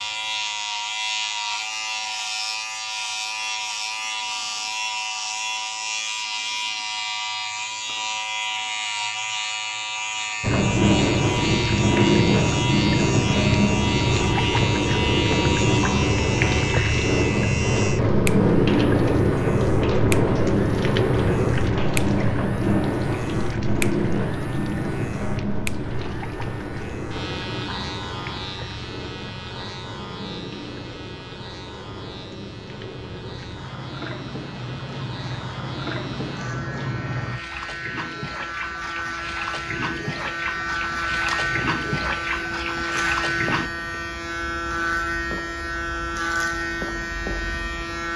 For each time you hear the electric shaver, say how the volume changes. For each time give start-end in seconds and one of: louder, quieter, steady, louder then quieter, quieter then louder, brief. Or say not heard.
0.0-48.1 quieter then louder.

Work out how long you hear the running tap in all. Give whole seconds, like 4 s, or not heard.
33 s.